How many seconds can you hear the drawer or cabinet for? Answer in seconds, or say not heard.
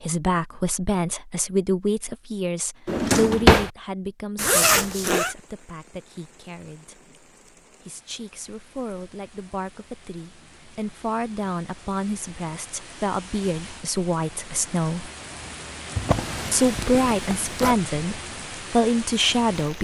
2 s.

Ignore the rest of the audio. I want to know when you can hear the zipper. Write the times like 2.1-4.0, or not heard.
4.3-5.3, 16.6-17.8.